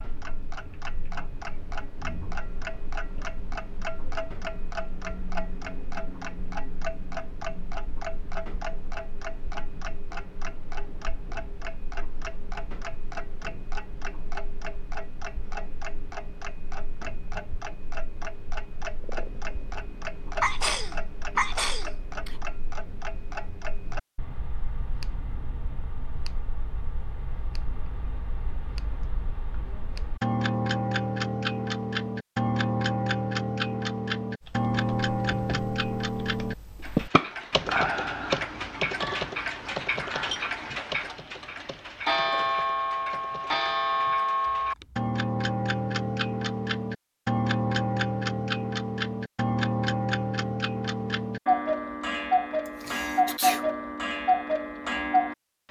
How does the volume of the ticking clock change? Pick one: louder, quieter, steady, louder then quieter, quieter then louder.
louder.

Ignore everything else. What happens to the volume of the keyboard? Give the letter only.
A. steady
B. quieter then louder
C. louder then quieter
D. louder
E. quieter
C.